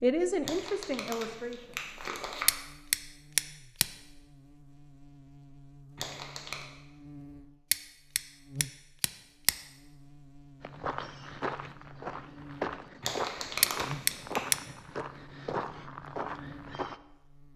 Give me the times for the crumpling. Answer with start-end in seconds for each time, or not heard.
0.4-2.5, 6.0-6.7, 13.0-14.4.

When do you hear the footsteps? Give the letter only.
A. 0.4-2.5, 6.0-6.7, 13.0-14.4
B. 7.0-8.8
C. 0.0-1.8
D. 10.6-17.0
D.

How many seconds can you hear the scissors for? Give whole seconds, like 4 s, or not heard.
4 s.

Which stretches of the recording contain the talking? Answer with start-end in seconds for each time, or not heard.
0.0-1.8.